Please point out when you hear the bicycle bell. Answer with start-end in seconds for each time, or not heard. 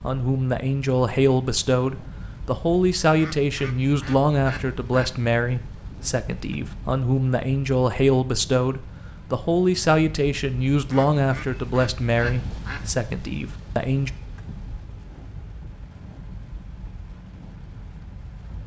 not heard.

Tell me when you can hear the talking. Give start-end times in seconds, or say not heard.
0.0-14.1.